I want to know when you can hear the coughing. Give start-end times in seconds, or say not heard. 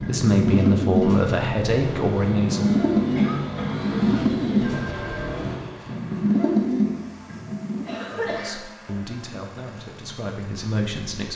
3.1-3.9, 7.8-8.6.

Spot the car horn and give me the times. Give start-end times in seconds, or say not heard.
not heard.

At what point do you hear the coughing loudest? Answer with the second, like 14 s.
8 s.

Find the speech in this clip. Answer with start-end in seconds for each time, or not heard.
0.0-2.8, 8.1-11.3.